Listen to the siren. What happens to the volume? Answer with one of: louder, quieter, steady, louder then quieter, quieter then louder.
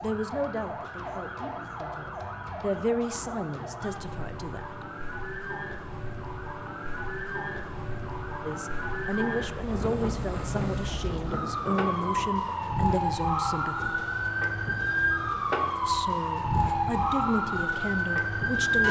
louder.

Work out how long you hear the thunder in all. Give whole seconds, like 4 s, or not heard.
3 s.